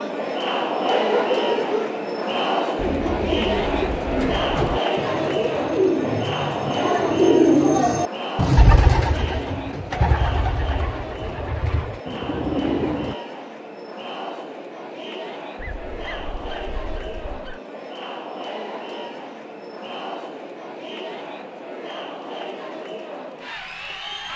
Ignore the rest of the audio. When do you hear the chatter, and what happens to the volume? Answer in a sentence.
The chatter can be heard from 0.0 to 24.3 s, getting quieter.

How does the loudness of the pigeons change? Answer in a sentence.
The loudness of the pigeons goes up, then down.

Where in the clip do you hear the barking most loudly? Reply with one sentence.
The volume of the barking peaks at 1 second.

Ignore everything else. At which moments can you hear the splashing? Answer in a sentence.
You can't hear the splashing here.